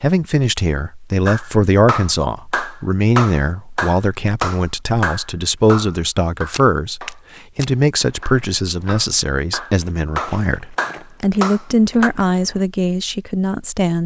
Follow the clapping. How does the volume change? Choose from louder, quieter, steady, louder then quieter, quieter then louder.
quieter then louder.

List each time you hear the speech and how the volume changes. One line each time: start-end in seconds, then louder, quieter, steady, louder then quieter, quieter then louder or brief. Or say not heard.
0.0-14.0 steady.